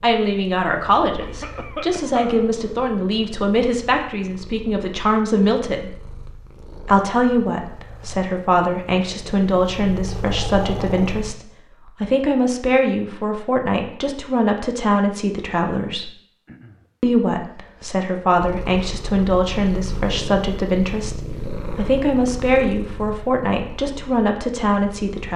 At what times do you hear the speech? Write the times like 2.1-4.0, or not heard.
0.0-6.0, 6.8-16.1, 17.0-25.3.